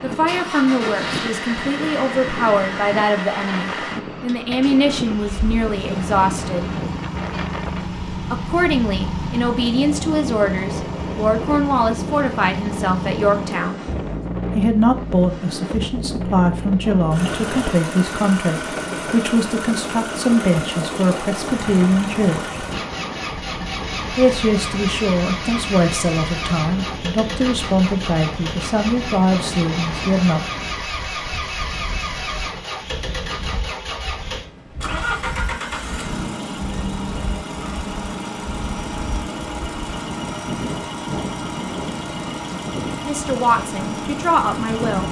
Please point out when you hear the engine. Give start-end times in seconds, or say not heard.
0.0-45.0.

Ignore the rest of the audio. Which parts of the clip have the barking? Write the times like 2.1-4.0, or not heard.
not heard.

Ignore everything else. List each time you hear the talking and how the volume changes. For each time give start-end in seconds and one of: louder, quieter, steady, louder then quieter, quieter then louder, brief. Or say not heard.
0.0-6.7 steady
8.3-13.8 steady
14.6-22.6 steady
24.1-30.5 steady
43.0-45.0 brief.